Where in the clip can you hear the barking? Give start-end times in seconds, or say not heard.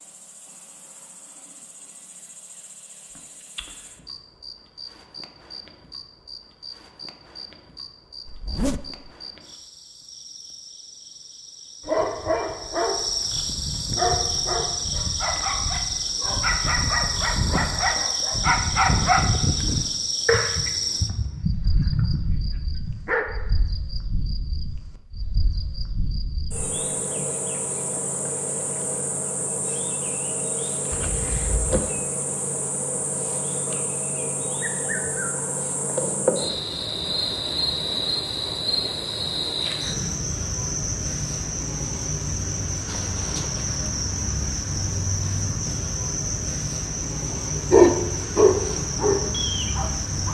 11.8-23.2, 47.2-50.2.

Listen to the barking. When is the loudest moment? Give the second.
48 s.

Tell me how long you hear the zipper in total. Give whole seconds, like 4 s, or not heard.
3 s.